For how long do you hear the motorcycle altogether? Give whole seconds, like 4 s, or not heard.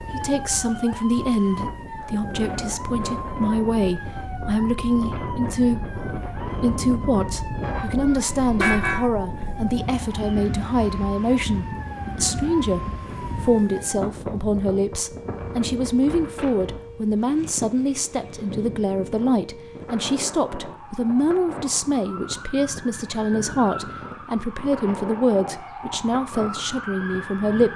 not heard.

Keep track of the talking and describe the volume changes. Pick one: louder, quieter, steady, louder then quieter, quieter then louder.
steady.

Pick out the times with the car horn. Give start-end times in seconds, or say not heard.
8.1-9.0.